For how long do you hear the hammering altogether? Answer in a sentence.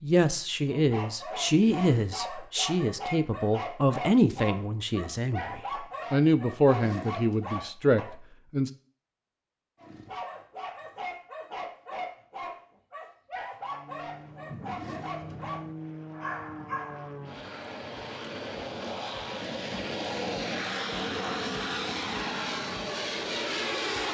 You can't hear the hammering here.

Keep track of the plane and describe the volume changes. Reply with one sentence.
The volume of the plane goes up.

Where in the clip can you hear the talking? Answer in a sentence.
You can hear the talking from 0.0 to 8.7 s.